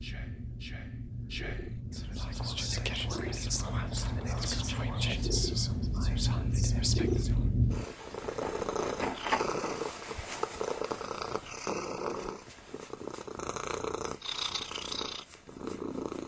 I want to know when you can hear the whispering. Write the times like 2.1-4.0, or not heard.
0.0-7.5.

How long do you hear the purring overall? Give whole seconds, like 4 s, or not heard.
16 s.